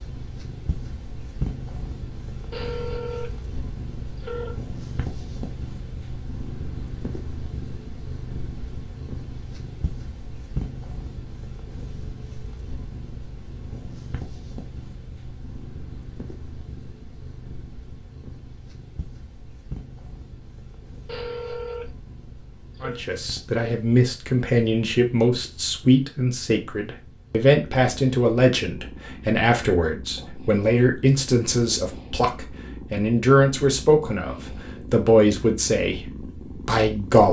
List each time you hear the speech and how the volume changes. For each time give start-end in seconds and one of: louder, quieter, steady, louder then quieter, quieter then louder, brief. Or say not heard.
22.8-37.2 steady.